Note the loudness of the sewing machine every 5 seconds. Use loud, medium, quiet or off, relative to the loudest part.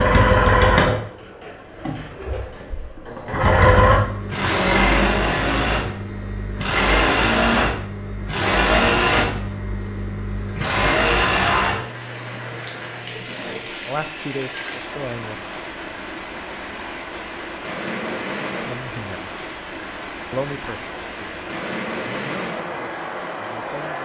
loud, loud, medium, quiet, quiet.